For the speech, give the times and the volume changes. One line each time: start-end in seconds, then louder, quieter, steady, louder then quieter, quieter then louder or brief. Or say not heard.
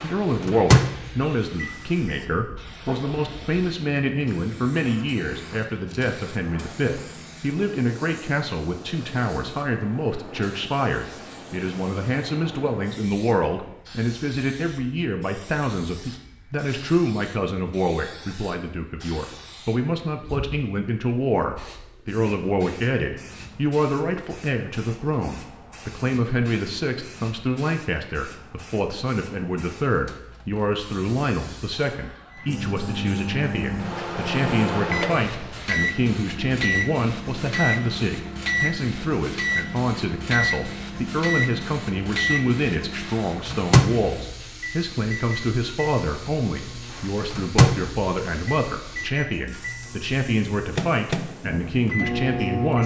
0.0-52.8 steady.